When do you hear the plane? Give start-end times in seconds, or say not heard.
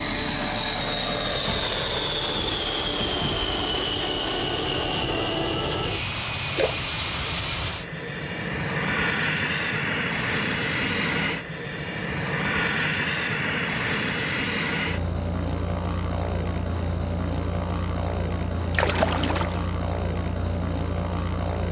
0.0-21.6.